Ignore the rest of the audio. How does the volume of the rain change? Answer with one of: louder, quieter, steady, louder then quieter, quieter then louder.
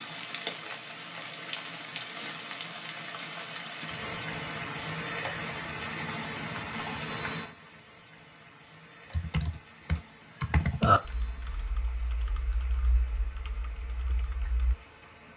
quieter.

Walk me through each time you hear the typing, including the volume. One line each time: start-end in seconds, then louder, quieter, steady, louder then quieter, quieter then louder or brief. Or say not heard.
9.1-14.8 louder then quieter.